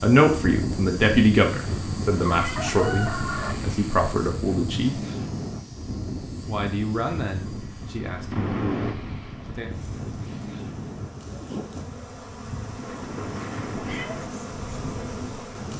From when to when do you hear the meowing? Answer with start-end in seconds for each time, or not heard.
1.6-3.6, 8.3-8.9, 13.1-14.2.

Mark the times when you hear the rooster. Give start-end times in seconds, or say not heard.
2.1-3.5.